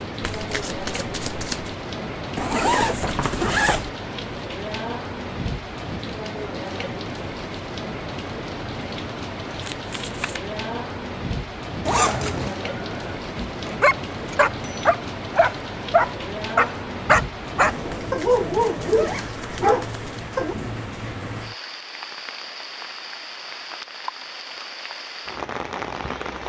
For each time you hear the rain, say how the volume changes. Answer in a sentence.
The rain can be heard from 0.0 to 26.4 s, at a steady volume.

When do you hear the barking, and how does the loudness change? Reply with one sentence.
The barking can be heard from 12.7 to 20.6 s, at a steady volume.